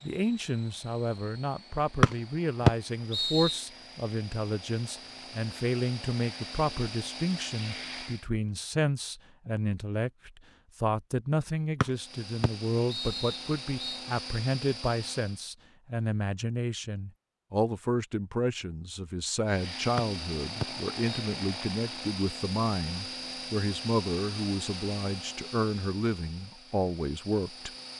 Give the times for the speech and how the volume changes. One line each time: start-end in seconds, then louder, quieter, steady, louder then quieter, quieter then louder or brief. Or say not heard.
0.0-27.7 steady.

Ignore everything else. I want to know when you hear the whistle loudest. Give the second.
3 s.